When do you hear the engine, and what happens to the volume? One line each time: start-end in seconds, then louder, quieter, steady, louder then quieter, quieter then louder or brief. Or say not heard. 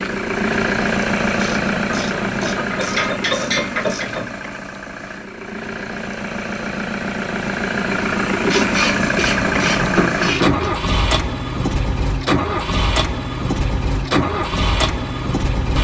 0.0-15.8 quieter then louder.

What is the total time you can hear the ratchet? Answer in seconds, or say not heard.
5 s.